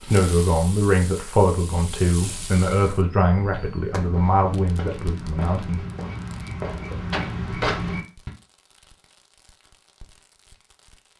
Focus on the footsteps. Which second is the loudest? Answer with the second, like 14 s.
8 s.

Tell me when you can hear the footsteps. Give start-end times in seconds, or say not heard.
2.1-8.3.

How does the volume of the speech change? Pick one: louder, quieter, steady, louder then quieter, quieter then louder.
quieter.